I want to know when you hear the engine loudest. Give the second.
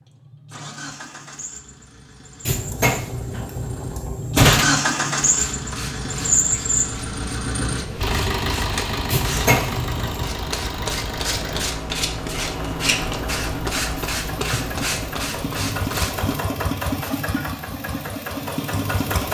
5 s.